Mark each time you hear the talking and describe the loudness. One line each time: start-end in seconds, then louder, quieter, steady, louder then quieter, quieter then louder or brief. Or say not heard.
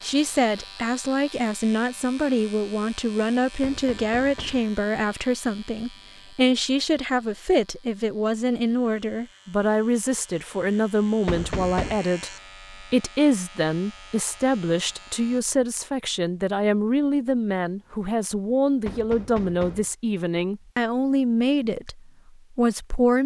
0.0-23.2 steady.